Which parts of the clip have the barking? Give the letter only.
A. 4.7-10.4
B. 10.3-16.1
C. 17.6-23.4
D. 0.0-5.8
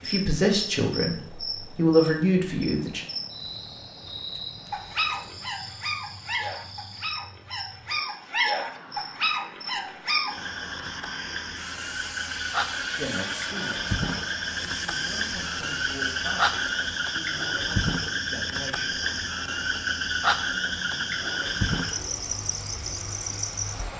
A.